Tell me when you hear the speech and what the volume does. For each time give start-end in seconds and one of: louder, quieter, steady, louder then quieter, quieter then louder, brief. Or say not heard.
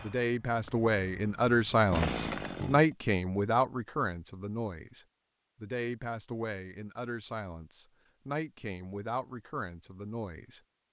0.0-10.6 quieter.